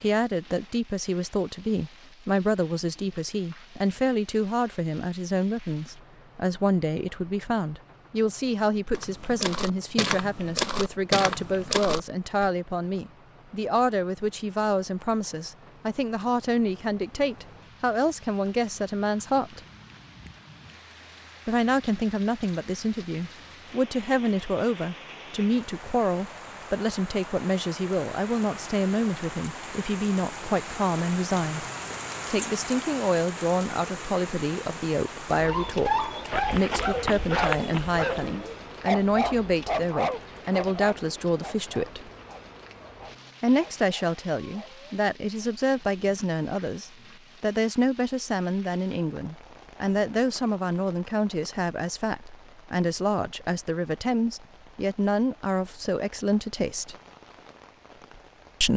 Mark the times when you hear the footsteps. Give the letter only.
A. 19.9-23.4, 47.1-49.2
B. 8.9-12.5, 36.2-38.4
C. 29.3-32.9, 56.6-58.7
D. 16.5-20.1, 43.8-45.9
B.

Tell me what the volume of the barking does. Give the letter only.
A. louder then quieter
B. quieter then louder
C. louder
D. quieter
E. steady
D.